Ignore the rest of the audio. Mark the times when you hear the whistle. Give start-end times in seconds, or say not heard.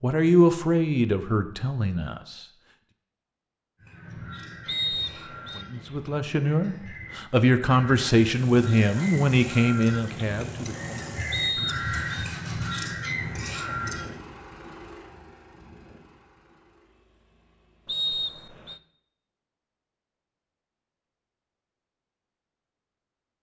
4.7-5.7, 11.3-12.2, 17.9-18.8.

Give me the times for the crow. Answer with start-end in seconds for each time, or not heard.
3.8-14.2.